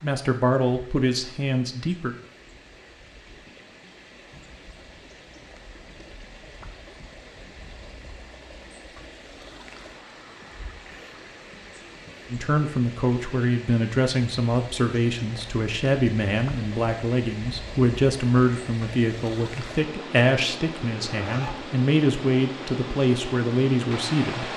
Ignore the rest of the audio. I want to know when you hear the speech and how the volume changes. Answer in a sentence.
The speech can be heard briefly from 0.0 to 2.1 s; and from 12.3 to 24.5 s, at a steady volume.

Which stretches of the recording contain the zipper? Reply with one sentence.
The zipper can be heard from 21.1 to 21.6 s.